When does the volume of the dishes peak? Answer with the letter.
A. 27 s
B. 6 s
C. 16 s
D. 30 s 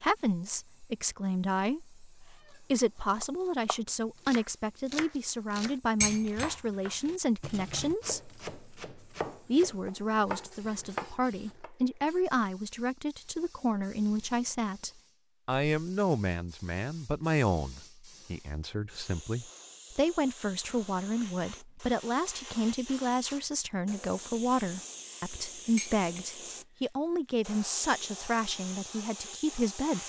B.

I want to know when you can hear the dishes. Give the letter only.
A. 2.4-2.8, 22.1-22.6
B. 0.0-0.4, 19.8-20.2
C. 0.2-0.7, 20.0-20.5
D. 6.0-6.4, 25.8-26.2
D.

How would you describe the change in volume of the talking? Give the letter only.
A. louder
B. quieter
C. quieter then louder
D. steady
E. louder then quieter
D.